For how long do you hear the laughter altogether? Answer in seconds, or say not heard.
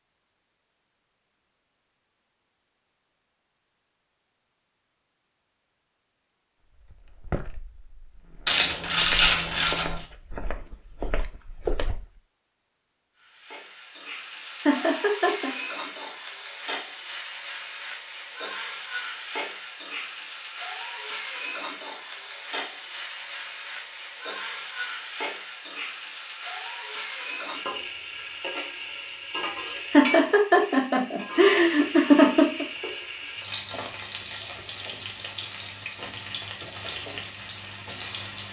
4 s.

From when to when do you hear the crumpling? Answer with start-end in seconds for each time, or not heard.
8.4-10.1.